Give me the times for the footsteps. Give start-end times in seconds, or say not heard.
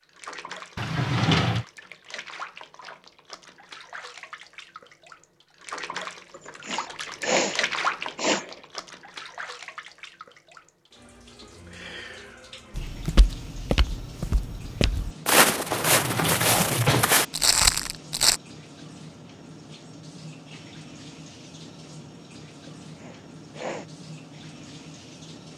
12.8-18.4.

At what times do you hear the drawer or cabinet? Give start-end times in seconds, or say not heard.
0.8-1.6, 15.7-17.2.